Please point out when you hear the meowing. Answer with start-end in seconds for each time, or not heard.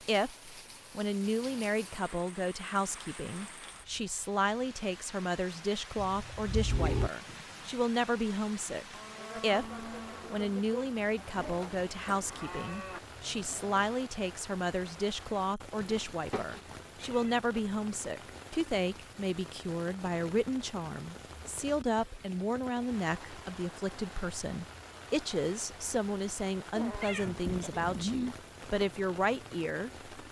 6.0-7.1, 15.8-17.3, 26.8-28.4.